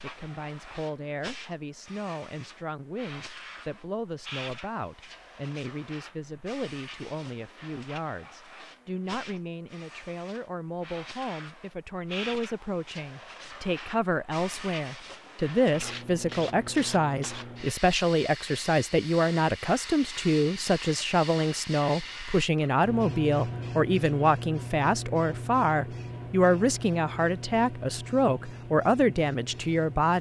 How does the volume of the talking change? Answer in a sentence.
The volume of the talking goes up.